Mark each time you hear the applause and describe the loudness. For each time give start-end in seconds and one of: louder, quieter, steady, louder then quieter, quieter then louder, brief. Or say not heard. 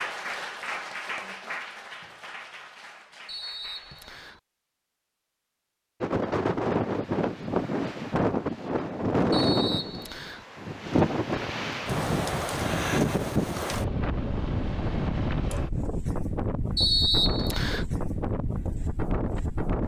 0.0-4.4 quieter.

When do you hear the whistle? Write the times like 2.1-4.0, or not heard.
3.2-4.4, 9.3-10.4, 16.8-17.9.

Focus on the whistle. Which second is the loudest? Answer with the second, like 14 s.
17 s.